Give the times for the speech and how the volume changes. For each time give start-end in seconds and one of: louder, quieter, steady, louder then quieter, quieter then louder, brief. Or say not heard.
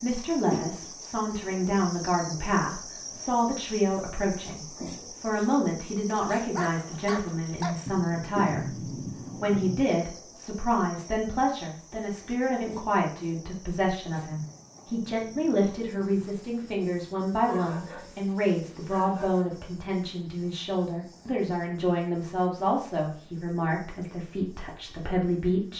0.0-25.7 steady.